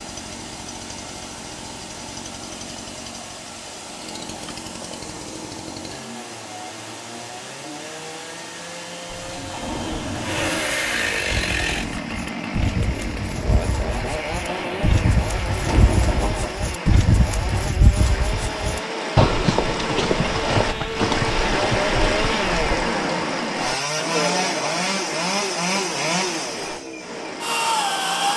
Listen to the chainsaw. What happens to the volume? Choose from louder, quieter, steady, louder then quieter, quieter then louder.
louder.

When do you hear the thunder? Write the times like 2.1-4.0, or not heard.
9.1-10.6, 14.4-16.5.